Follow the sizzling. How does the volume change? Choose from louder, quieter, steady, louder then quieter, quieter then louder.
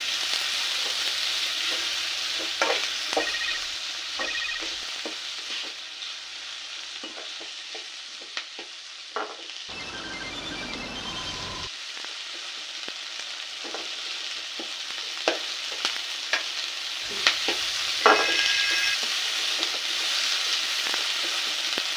quieter then louder.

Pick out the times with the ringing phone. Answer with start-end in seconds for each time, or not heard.
3.1-4.8, 9.7-11.7, 17.0-18.9.